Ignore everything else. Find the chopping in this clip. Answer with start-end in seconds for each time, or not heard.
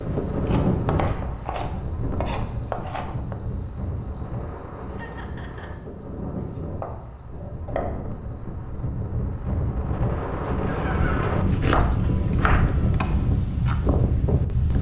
0.5-3.4, 6.8-7.9, 11.3-13.3.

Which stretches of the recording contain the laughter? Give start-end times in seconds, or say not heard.
4.8-5.7, 10.7-11.3.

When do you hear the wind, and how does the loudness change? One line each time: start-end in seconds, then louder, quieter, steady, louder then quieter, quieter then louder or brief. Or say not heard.
0.0-14.7 quieter then louder.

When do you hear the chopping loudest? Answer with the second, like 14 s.
12 s.